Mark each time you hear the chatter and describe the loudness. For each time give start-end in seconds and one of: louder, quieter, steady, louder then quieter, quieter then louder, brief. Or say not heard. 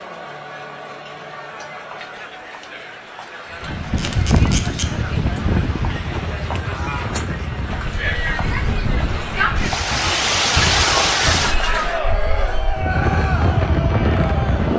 0.0-14.7 louder.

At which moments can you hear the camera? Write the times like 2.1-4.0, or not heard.
4.0-4.8.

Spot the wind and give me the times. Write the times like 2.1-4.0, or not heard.
3.6-14.7.